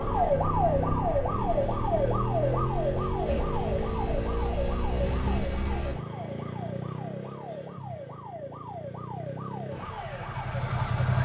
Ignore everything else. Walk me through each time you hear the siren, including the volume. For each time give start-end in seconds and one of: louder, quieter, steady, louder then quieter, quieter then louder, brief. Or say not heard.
0.0-11.2 quieter.